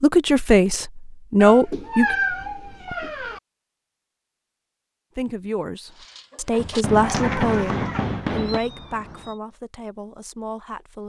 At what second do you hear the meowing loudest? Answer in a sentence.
The loudest moment of the meowing is at 2 seconds.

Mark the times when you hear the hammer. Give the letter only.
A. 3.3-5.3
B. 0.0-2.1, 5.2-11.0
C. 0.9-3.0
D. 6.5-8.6
D.